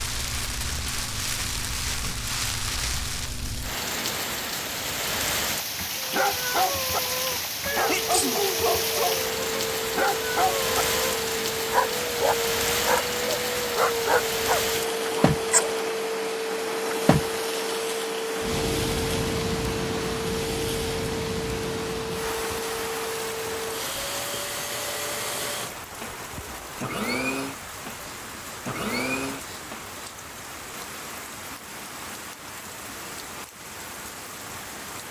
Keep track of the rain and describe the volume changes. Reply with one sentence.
The loudness of the rain goes down.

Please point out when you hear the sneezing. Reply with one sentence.
You can hear the sneezing from 7.8 to 8.4 s.